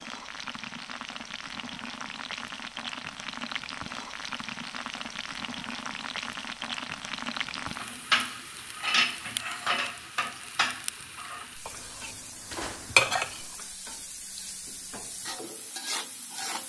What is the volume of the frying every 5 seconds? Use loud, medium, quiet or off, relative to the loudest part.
loud, loud, medium, loud.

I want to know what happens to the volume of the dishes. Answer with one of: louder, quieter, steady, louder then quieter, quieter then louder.
quieter then louder.